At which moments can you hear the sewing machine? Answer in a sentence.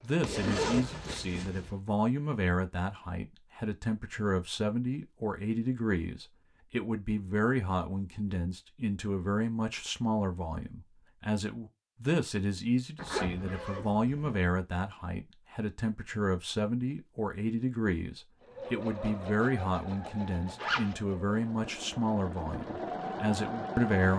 You can hear the sewing machine from 0.0 to 1.8 s and from 18.4 to 24.1 s.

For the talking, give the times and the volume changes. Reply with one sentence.
You can hear the talking from 0.0 to 24.1 s, at a steady volume.